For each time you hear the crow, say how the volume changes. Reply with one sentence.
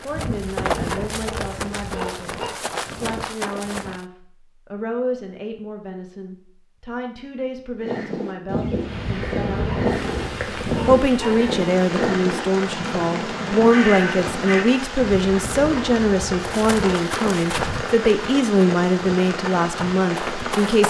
The crow can be heard from 7.8 to 14.7 s, at a steady volume.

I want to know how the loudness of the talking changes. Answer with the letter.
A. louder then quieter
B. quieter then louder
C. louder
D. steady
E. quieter
C.